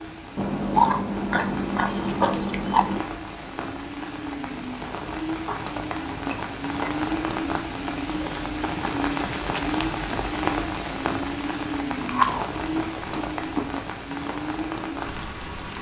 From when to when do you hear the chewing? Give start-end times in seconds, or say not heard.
0.3-3.0, 5.5-7.1, 12.0-13.7.